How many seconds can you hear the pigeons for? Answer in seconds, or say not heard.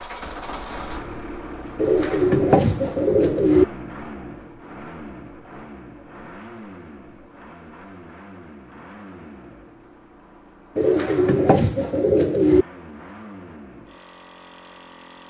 4 s.